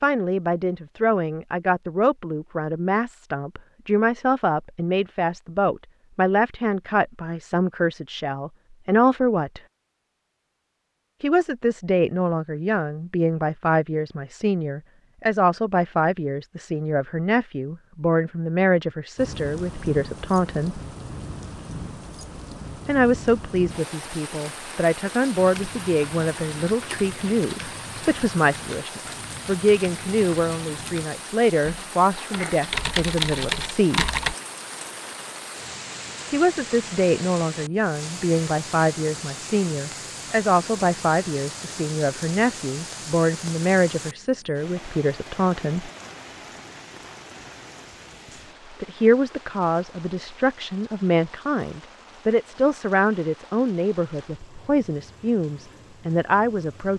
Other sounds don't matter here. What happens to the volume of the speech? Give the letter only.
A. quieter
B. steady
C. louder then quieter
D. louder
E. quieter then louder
B.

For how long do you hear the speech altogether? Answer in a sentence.
The speech can be heard for 49 seconds in total.